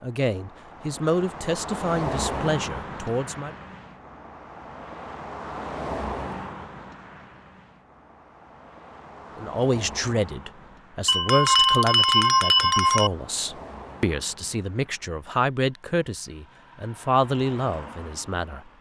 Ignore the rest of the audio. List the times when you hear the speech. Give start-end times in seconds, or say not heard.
0.0-3.5, 9.3-18.6.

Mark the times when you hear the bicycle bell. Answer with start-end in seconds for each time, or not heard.
11.1-13.1.